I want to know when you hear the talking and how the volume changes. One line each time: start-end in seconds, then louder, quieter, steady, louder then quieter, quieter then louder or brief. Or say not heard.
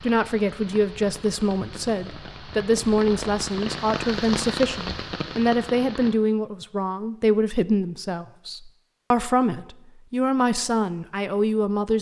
0.0-11.9 steady.